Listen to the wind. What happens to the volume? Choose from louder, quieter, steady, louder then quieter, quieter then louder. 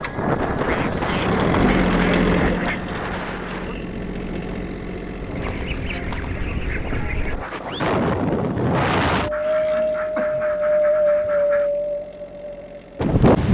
quieter then louder.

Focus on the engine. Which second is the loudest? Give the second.
2 s.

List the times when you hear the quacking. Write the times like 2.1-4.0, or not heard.
0.6-3.0, 5.3-7.3, 9.3-11.7.